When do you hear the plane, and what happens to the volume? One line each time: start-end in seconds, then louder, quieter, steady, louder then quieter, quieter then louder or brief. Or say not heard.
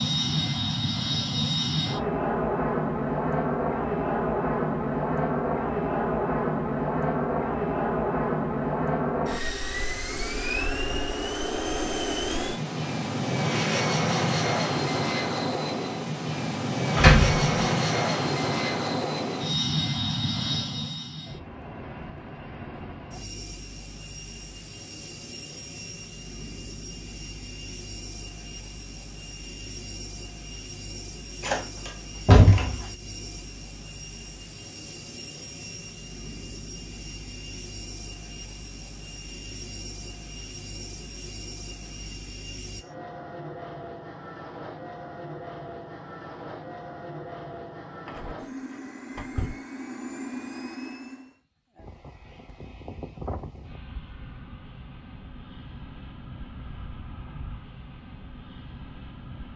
0.0-59.5 quieter.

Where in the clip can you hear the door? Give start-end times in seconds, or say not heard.
16.9-17.6, 31.4-32.8, 48.0-49.5.